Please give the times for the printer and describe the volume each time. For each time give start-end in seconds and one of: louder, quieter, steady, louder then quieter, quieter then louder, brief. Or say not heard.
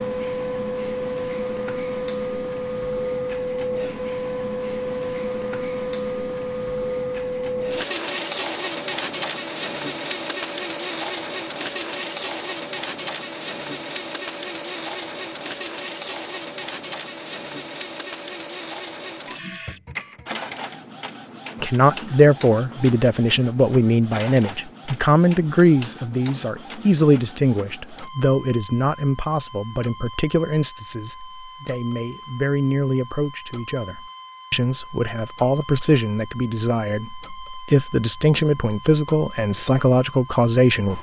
0.0-40.9 quieter.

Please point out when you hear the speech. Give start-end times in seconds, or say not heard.
21.6-40.9.